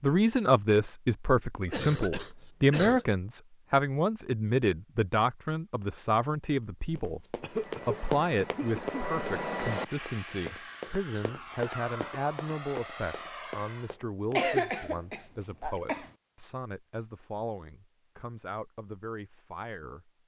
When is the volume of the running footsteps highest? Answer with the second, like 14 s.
8 s.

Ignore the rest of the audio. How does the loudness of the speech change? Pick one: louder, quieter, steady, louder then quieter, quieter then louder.
quieter.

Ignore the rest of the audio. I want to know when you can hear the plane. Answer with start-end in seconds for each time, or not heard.
7.4-13.9.